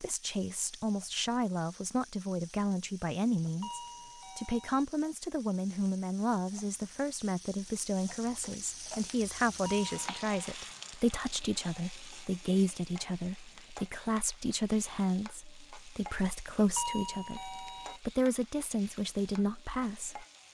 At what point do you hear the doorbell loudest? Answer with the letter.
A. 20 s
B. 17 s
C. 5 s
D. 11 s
B.